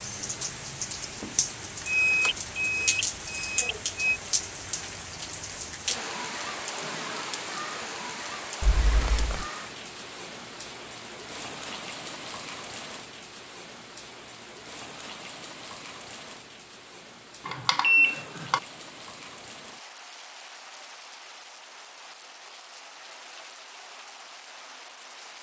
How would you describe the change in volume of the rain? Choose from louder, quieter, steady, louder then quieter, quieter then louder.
quieter.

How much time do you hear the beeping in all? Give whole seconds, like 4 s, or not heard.
4 s.